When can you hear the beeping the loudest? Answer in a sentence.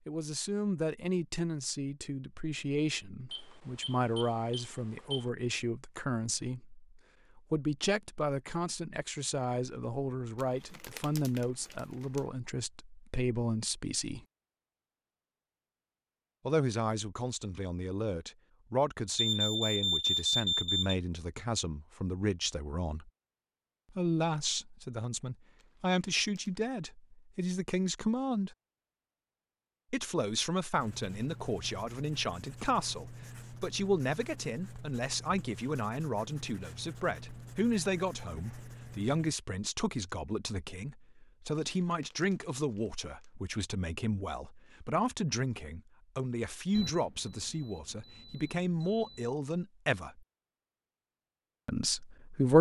The loudest moment of the beeping is at 20 seconds.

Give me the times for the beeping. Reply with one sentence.
The beeping can be heard from 3.3 to 5.3 s, from 19.1 to 20.9 s and from 46.7 to 49.3 s.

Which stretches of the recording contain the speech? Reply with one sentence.
The speech can be heard from 0.1 to 14.2 s, from 16.4 to 23.1 s, from 23.9 to 28.6 s, from 29.9 to 50.2 s and from 51.6 to 52.5 s.